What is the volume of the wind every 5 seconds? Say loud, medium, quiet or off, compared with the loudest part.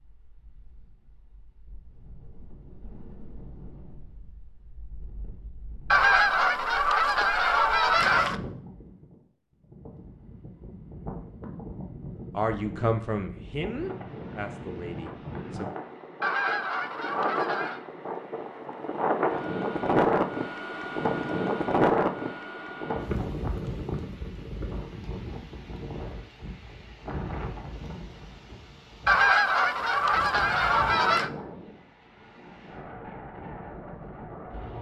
quiet, quiet, quiet, loud, loud, quiet, quiet.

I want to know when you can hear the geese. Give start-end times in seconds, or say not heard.
5.9-8.4, 16.2-17.8, 29.1-31.3.